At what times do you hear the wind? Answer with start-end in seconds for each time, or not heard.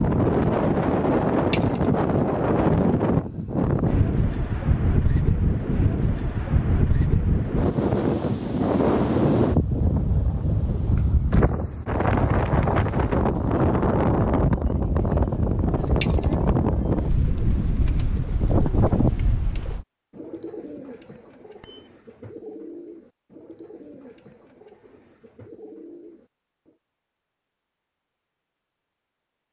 0.0-19.9.